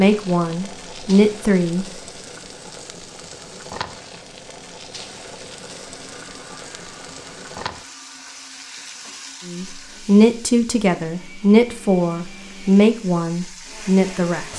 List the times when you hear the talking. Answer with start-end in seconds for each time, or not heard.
0.0-1.9, 9.4-14.5.